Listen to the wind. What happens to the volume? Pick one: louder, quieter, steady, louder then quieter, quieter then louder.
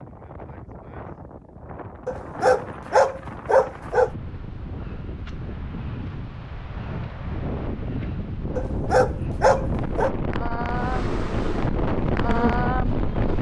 louder.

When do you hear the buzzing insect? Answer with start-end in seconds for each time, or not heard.
10.7-13.3.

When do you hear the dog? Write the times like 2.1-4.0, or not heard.
2.0-4.1, 8.6-10.1.